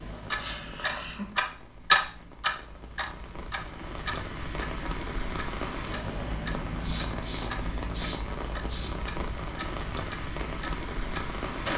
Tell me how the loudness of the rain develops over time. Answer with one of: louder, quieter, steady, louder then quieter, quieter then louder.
louder.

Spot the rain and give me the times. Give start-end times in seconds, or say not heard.
0.0-11.7.